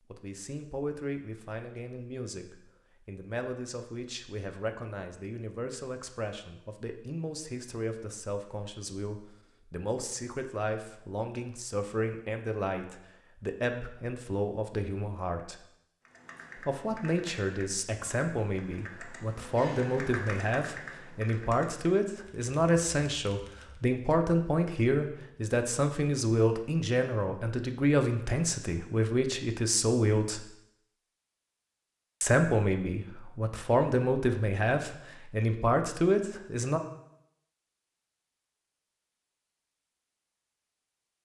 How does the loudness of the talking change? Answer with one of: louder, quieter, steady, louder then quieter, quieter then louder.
louder.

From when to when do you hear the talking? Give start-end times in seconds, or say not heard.
0.1-15.6, 16.6-30.4, 32.2-36.8.